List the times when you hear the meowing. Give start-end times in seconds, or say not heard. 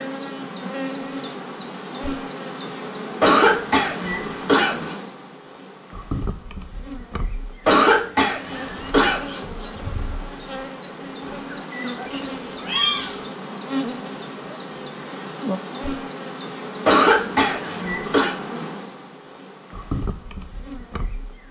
12.1-13.2.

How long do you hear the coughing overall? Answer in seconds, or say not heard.
5 s.